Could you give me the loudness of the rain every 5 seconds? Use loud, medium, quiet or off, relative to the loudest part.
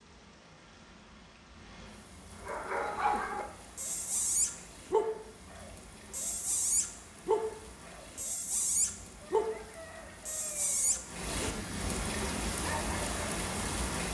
quiet, quiet, loud.